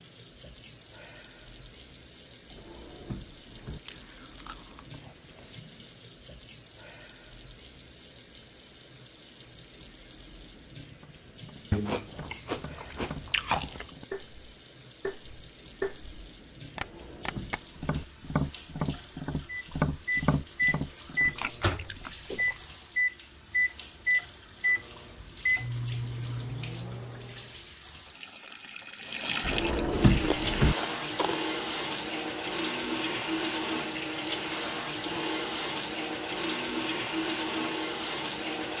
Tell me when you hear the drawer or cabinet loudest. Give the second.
30 s.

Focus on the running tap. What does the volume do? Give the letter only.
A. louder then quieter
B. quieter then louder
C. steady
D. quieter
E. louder
E.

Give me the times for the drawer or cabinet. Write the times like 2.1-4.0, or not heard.
2.5-3.8, 16.8-18.1, 29.4-30.8.